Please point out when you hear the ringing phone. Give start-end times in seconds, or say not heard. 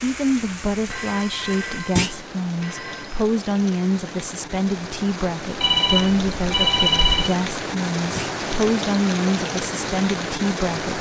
0.8-3.2, 5.6-7.3.